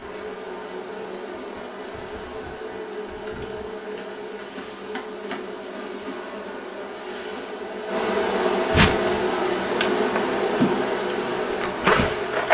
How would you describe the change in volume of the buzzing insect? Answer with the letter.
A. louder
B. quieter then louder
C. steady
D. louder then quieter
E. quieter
A.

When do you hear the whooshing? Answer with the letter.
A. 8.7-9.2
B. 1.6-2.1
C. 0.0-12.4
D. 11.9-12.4
A.